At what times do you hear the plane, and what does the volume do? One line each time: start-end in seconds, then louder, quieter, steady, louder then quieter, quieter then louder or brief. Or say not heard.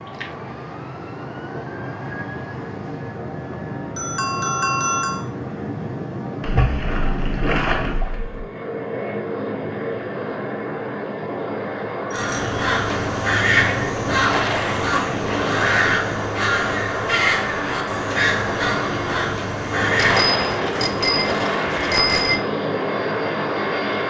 0.0-24.0 louder.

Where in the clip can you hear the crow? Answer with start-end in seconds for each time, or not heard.
12.1-20.4.